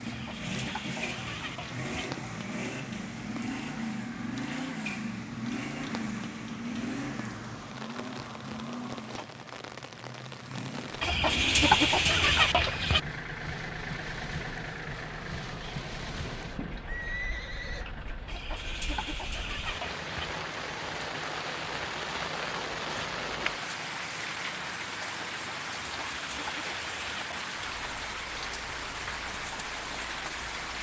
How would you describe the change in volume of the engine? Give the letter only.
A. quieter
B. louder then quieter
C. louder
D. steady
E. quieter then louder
A.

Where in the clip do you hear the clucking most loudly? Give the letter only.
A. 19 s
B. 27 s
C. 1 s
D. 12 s
D.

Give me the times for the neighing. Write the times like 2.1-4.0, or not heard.
16.4-17.9.